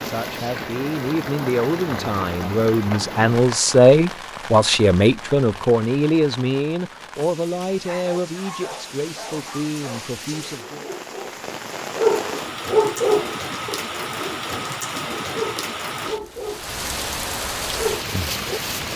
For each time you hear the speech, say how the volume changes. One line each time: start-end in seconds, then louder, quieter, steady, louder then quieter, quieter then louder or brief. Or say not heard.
0.0-10.9 louder then quieter.